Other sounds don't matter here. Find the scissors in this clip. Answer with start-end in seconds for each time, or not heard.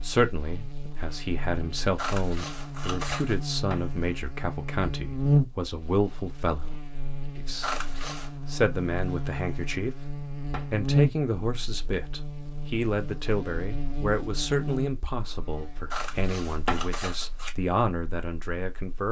1.9-3.4, 7.6-8.3, 15.9-17.6.